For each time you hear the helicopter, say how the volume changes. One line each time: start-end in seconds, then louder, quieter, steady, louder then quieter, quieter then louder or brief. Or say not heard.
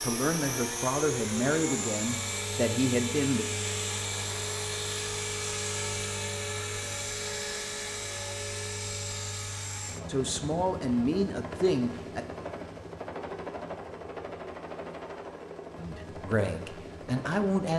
0.0-17.7 quieter.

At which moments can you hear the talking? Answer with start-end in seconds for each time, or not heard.
0.0-3.5, 10.1-12.2, 15.8-17.7.